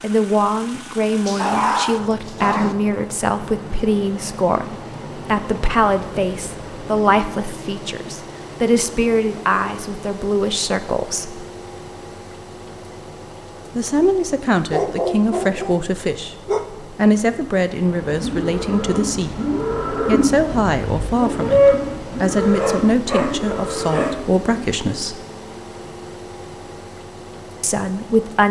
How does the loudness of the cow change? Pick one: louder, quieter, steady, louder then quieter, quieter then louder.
louder then quieter.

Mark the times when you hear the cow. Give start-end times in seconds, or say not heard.
18.1-24.6.